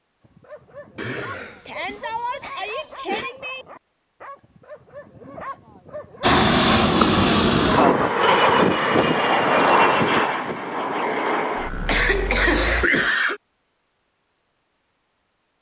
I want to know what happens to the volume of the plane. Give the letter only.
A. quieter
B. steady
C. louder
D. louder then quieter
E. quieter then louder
A.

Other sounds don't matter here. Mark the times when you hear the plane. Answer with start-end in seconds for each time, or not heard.
6.2-12.8.